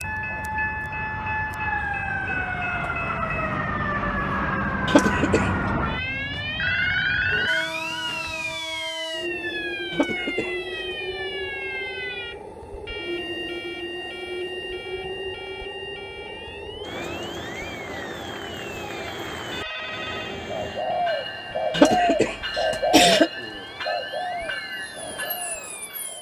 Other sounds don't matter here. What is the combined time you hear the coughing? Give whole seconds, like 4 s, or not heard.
3 s.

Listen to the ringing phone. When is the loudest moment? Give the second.
7 s.